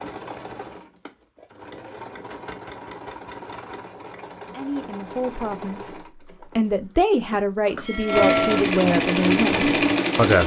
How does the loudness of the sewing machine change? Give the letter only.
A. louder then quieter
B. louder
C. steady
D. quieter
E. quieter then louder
B.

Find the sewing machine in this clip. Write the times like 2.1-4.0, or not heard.
0.0-10.4.